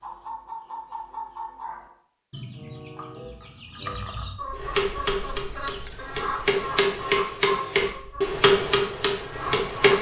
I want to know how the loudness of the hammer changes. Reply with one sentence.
The volume of the hammer goes up, then down.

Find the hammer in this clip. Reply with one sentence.
You can hear the hammer from 4.5 to 9.9 s.